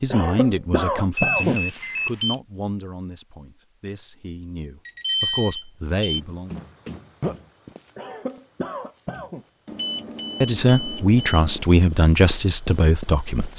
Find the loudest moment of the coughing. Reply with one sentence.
The loudest moment of the coughing is at 1 second.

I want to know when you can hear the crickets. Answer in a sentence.
The crickets can be heard from 6.0 to 13.5 s.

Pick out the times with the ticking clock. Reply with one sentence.
The ticking clock can't be heard in this clip.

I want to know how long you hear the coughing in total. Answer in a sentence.
You can hear the coughing for 3 seconds altogether.